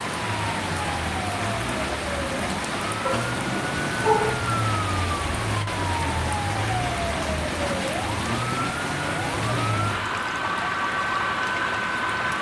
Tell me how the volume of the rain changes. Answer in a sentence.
The volume of the rain stays about the same.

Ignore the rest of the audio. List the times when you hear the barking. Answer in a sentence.
You can hear the barking from 3.0 to 4.3 s.